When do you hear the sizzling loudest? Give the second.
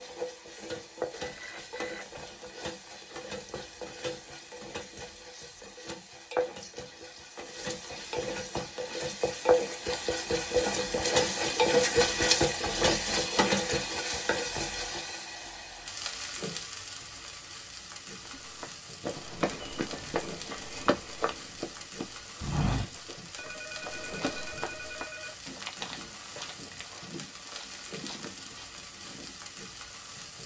12 s.